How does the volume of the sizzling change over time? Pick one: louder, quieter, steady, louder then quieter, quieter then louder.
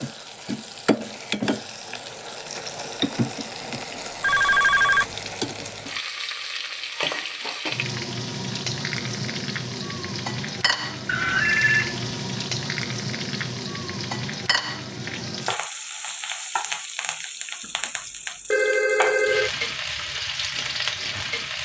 steady.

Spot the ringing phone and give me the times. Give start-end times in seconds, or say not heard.
4.2-5.0, 11.1-12.0, 17.6-19.5.